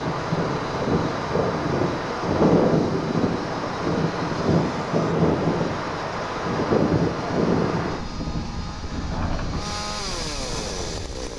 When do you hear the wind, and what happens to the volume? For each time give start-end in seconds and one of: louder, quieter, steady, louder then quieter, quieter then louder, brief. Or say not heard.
0.0-11.3 quieter.